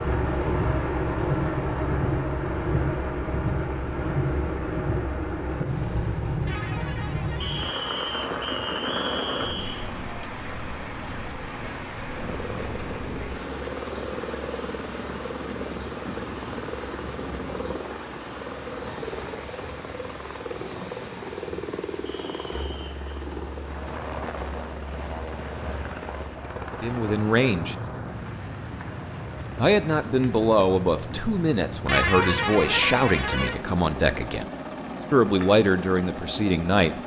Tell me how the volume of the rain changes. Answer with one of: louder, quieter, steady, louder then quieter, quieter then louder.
quieter.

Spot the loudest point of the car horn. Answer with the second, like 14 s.
32 s.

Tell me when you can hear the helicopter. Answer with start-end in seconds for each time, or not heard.
12.1-37.0.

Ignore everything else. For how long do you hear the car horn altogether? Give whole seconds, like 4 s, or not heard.
4 s.